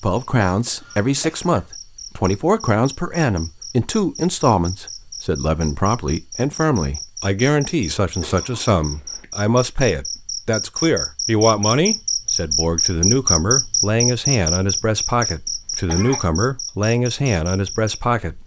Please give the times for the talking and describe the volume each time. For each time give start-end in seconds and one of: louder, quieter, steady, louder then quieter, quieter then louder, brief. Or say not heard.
0.0-18.4 steady.